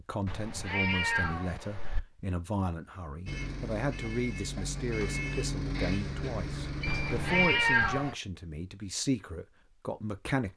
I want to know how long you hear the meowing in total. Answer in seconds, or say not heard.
3 s.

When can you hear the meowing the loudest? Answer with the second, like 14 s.
8 s.